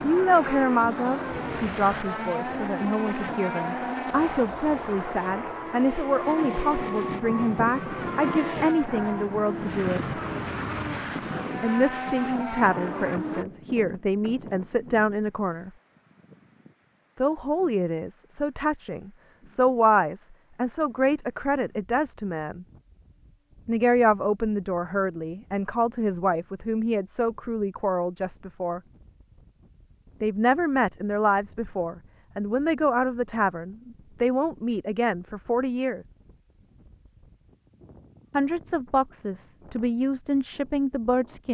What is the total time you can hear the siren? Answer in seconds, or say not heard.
not heard.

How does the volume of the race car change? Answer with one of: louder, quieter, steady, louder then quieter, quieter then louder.
steady.